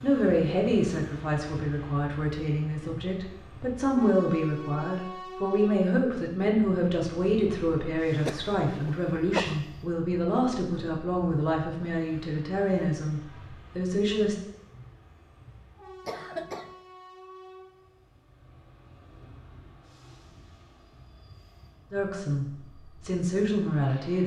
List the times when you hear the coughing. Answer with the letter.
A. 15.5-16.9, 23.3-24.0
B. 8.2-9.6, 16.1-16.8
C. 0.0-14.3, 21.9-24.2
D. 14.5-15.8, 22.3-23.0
B.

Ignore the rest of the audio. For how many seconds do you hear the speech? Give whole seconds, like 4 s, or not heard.
17 s.